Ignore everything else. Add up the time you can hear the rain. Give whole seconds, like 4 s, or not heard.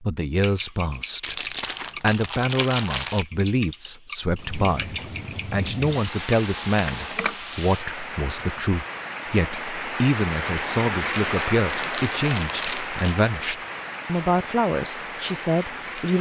12 s.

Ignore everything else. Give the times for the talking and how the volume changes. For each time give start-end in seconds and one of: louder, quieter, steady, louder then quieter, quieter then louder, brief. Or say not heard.
0.0-16.1 steady.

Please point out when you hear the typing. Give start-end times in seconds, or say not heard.
0.4-7.3.